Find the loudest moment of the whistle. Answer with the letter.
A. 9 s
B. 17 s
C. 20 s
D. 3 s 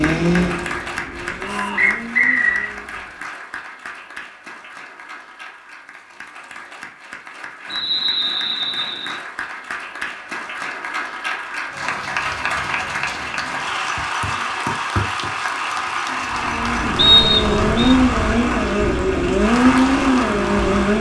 B.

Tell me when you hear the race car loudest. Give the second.
20 s.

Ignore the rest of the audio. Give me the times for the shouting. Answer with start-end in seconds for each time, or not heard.
1.4-2.0.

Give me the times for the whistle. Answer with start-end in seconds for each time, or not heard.
1.8-2.7, 7.7-9.2, 16.9-17.9.